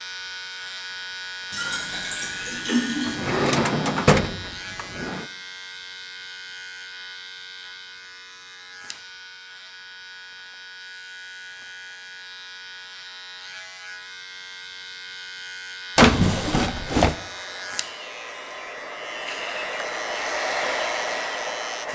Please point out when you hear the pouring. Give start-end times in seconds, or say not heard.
1.5-3.2.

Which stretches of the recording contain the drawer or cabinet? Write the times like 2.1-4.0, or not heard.
3.0-5.2, 15.9-17.1.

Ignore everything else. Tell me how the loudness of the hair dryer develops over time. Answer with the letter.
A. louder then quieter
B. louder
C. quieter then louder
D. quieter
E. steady
B.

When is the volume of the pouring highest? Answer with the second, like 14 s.
3 s.